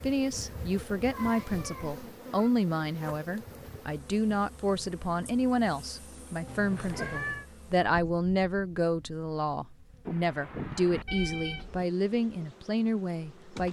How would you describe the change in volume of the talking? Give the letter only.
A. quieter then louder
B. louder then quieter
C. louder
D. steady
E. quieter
D.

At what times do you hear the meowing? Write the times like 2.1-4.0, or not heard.
0.9-2.5, 6.5-7.5, 10.1-11.8.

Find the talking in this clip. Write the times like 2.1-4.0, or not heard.
0.0-13.6.